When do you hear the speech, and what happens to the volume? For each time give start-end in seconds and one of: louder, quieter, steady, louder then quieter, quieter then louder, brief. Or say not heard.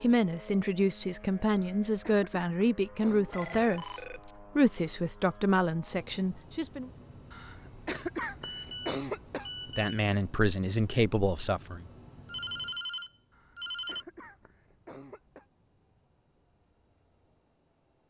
0.0-6.9 steady
9.7-11.8 brief.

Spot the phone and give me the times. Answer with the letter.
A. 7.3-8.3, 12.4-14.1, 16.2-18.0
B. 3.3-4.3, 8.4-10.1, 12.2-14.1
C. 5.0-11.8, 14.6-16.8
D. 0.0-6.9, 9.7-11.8
B.